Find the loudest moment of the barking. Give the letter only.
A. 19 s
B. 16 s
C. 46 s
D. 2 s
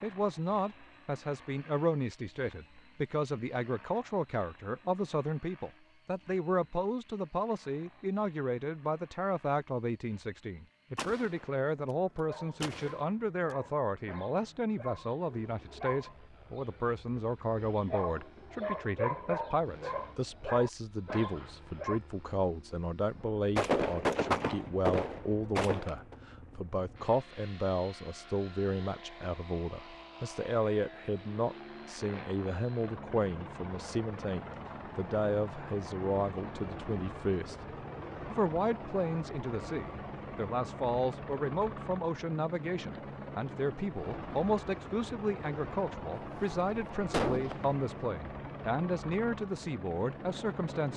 A.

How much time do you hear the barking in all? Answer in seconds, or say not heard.
10 s.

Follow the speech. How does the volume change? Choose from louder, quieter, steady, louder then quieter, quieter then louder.
steady.